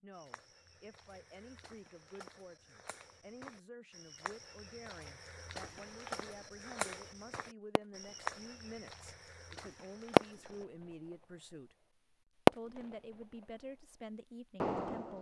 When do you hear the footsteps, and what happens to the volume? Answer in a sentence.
The footsteps can be heard from 0.1 to 10.7 s, getting louder then quieter.